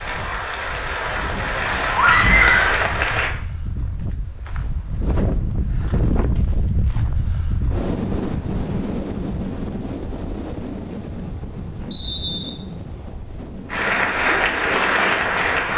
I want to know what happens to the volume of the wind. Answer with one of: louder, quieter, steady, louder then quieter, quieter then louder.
louder then quieter.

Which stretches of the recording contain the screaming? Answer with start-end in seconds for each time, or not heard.
1.9-2.8.